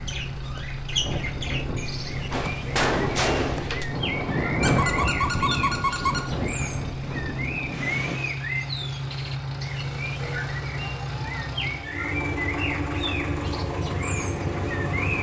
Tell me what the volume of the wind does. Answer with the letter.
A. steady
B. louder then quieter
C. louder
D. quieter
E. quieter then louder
B.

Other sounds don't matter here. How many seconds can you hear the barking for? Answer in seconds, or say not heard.
2 s.